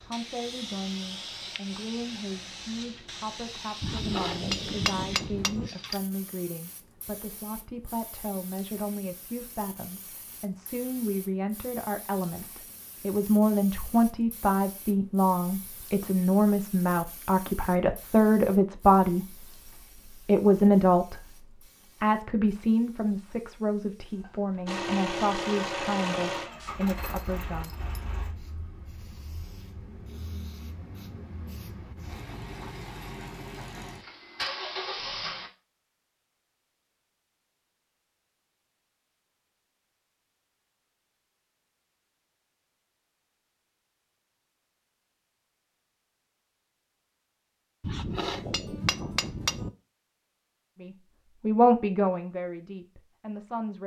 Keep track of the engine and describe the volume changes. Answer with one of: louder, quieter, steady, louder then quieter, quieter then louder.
quieter then louder.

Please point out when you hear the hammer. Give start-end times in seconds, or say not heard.
3.8-5.7, 47.8-49.7.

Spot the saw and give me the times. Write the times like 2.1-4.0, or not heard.
not heard.